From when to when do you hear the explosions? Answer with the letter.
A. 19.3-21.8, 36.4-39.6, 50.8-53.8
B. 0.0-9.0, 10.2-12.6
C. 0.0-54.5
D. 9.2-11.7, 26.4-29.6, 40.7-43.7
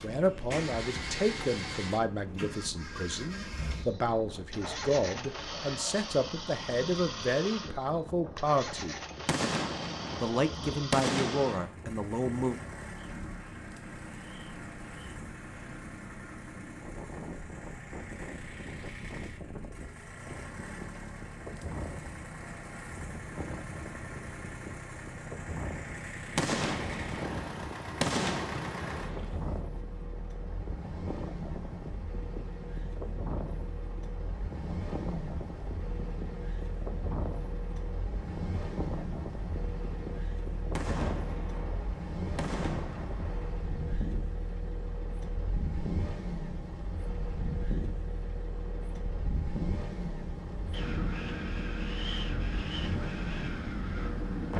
D.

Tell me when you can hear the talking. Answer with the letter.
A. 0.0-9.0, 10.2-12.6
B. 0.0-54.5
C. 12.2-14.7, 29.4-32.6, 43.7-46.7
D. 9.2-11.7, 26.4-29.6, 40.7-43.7
A.